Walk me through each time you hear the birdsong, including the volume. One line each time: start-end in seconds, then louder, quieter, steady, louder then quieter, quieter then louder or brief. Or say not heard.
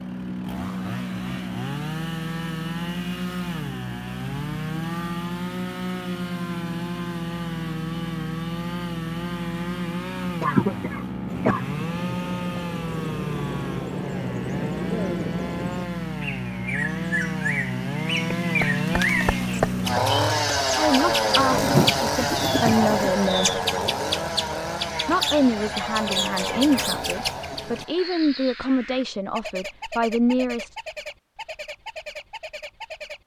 11.2-33.2 louder then quieter.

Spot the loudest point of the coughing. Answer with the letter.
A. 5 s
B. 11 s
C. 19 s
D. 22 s
B.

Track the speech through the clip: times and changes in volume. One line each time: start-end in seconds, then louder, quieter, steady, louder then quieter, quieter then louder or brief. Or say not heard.
20.8-23.5 brief
25.1-30.7 steady.